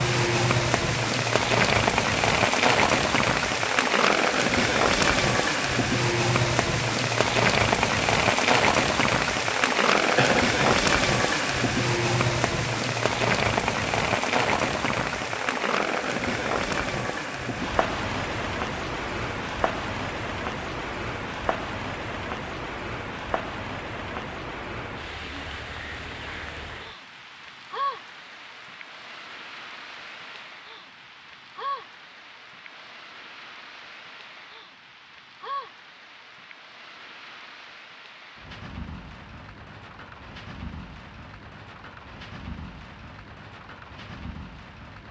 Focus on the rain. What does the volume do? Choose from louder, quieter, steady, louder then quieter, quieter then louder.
quieter.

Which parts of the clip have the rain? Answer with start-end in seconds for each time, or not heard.
0.0-45.0.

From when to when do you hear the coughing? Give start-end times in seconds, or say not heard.
10.1-10.8.